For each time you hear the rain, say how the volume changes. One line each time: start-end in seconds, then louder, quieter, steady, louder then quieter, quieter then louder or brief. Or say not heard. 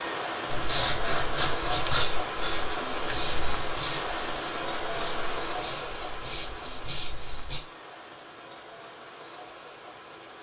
0.0-10.3 quieter.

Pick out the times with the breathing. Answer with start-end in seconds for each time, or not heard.
0.5-7.6.